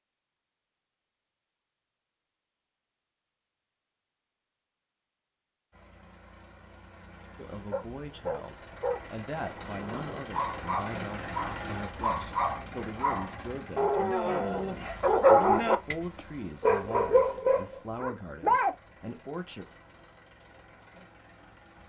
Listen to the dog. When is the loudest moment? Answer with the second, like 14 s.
15 s.